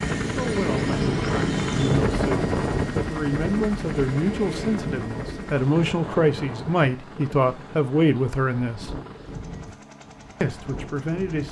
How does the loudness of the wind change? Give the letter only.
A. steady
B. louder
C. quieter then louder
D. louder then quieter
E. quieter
E.